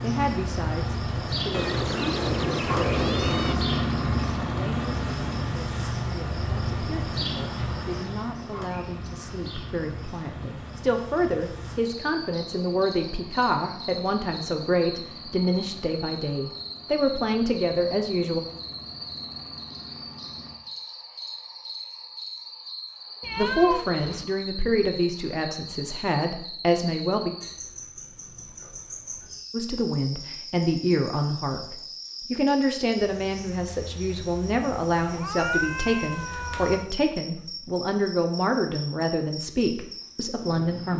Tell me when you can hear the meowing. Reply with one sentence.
You can hear the meowing from 1.5 to 3.5 s, from 23.2 to 24.2 s and from 35.0 to 36.9 s.